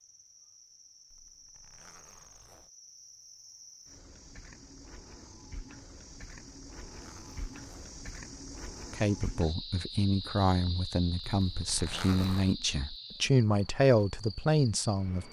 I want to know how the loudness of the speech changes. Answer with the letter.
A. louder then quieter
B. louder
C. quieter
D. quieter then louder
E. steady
B.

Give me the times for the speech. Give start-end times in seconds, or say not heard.
8.9-15.2.